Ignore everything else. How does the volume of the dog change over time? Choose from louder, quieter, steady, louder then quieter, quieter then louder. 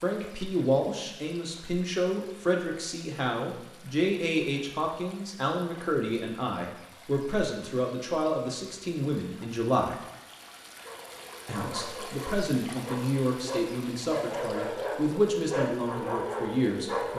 louder.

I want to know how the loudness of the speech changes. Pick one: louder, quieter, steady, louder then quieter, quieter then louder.
steady.